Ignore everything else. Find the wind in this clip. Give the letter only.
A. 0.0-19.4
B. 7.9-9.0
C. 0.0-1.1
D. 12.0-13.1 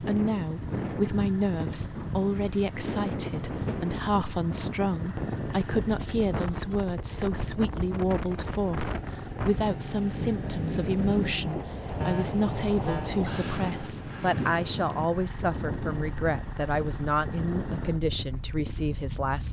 A.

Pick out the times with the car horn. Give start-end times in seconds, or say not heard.
12.0-13.1.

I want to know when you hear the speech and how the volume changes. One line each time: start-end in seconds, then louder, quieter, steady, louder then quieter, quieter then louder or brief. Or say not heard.
0.0-19.4 steady.